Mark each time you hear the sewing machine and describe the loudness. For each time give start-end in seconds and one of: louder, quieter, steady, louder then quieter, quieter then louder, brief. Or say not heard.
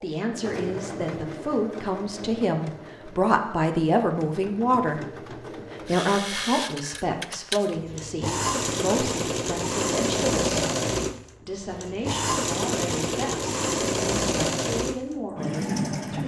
0.0-16.2 louder.